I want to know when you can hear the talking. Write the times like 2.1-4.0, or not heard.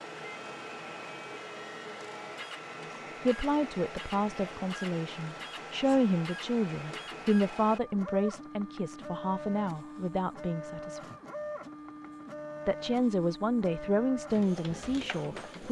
3.2-11.0, 12.7-15.6.